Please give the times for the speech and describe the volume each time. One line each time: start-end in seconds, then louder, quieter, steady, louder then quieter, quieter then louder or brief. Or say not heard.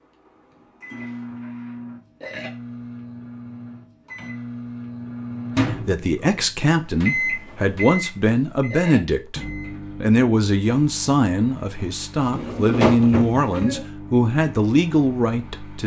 5.8-15.8 steady.